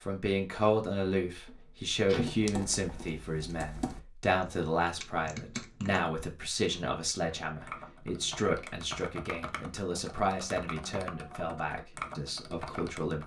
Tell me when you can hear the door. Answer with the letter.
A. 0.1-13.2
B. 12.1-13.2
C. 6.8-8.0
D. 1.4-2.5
D.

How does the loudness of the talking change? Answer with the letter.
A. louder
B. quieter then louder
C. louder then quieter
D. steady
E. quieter
E.